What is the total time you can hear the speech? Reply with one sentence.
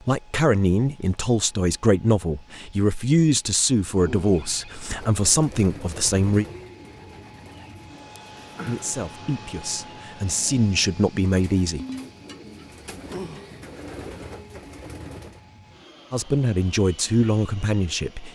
You can hear the speech for 12 seconds altogether.